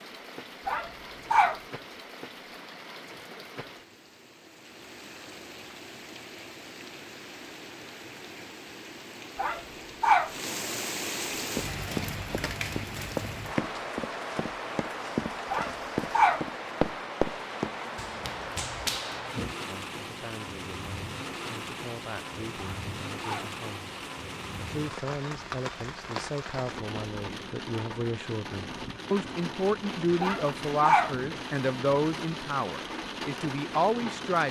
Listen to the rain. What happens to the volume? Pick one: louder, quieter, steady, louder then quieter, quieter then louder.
louder.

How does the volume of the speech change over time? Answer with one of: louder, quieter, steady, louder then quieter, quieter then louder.
louder.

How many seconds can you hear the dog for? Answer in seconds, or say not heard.
5 s.